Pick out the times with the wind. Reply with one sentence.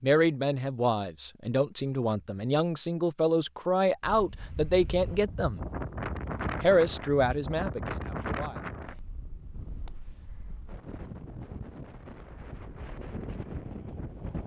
The wind can be heard from 4.0 to 14.4 s.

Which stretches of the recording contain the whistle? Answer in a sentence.
The whistle can't be heard in this clip.